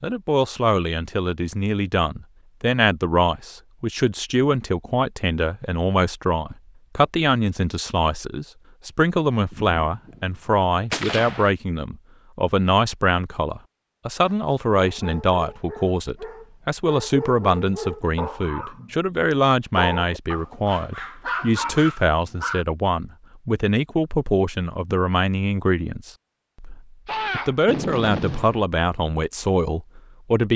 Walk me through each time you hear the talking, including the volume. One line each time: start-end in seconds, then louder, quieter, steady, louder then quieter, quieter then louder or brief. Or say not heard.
0.0-30.5 steady.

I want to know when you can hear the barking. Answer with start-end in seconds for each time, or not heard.
14.2-22.6.